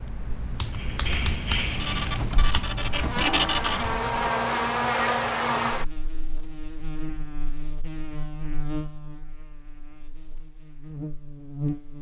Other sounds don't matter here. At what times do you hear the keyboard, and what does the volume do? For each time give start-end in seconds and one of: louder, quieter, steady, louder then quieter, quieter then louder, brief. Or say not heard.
0.0-4.3 louder then quieter.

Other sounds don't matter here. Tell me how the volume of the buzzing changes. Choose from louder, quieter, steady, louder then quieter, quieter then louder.
quieter.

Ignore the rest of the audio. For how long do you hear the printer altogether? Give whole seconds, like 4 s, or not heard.
2 s.